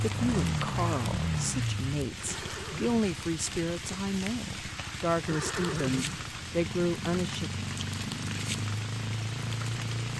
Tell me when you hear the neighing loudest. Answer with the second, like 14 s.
6 s.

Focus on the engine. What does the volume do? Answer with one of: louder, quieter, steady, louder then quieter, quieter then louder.
quieter then louder.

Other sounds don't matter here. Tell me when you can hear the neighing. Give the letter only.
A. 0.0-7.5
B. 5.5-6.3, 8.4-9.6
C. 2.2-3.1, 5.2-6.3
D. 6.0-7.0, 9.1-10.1
C.